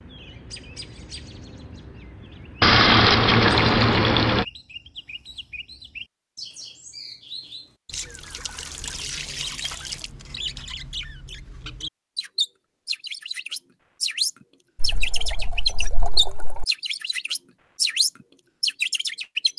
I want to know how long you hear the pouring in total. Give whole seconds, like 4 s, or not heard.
6 s.